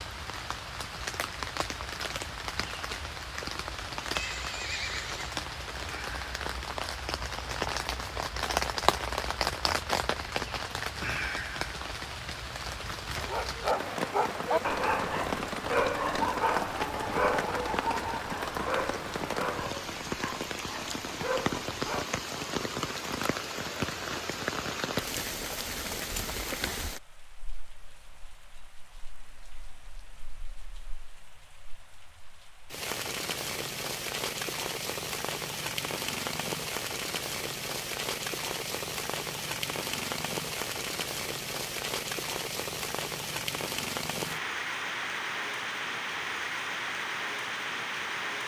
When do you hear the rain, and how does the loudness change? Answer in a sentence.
The rain can be heard from 0.0 to 48.4 s, at a steady volume.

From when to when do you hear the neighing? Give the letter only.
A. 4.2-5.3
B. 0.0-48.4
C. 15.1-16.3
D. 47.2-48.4
A.